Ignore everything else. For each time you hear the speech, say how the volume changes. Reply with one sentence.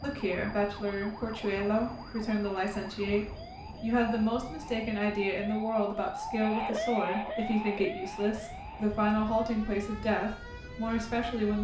The speech can be heard from 0.0 to 11.5 s, at a steady volume.